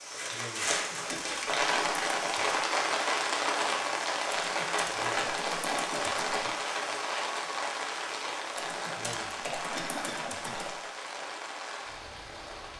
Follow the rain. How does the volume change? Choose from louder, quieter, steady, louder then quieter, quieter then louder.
quieter.